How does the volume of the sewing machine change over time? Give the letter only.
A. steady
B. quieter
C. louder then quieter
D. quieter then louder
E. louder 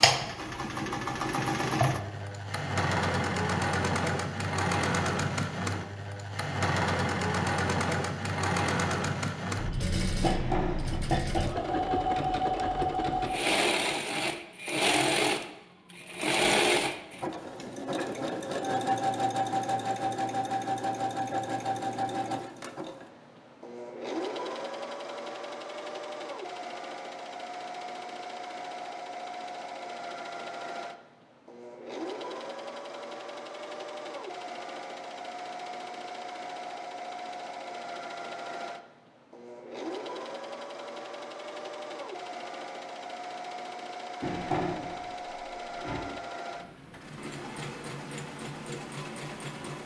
B.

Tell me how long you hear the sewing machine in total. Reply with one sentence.
You can hear the sewing machine for 50 seconds altogether.